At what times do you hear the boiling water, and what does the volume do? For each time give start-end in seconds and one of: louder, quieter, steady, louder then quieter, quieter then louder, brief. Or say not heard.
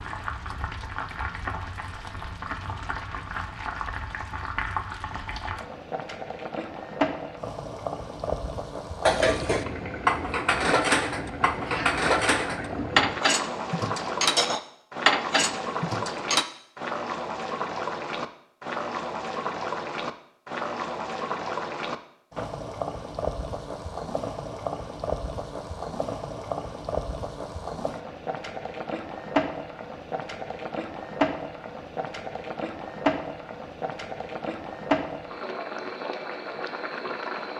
0.0-37.5 steady.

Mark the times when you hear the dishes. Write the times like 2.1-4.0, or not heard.
9.1-16.4.